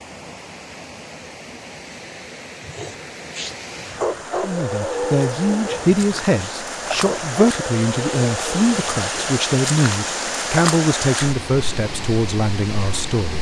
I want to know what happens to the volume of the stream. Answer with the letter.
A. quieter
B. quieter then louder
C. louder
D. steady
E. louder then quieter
C.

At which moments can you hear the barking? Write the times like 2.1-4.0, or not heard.
2.6-9.1.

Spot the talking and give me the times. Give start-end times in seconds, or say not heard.
4.4-13.3.